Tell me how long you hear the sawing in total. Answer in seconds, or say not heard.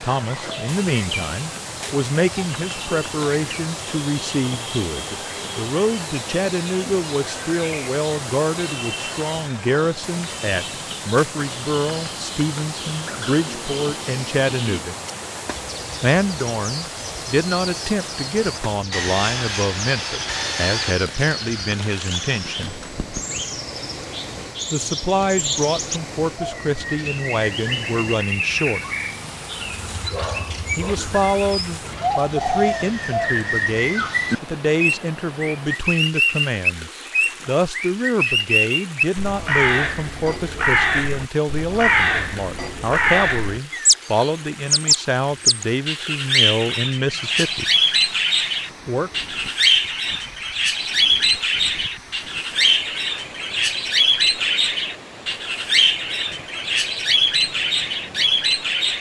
4 s.